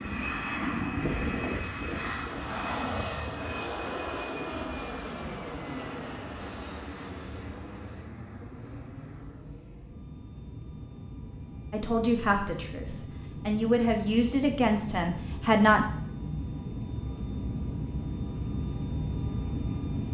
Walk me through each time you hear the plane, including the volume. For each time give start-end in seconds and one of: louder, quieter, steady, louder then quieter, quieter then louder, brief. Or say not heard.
0.0-20.0 quieter then louder.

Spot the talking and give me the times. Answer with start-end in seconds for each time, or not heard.
11.7-15.8.